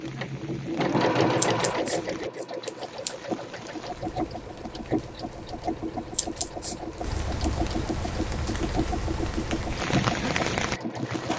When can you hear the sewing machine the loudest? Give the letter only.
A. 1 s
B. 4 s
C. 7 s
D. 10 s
A.